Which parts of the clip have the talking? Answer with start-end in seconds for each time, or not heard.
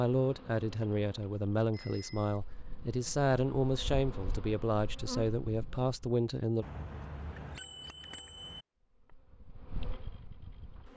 0.0-6.7.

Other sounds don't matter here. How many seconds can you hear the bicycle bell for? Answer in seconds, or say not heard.
3 s.